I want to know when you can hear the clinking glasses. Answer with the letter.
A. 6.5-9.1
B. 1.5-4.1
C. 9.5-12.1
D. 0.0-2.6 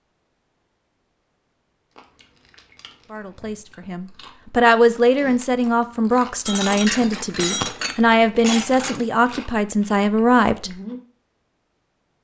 A.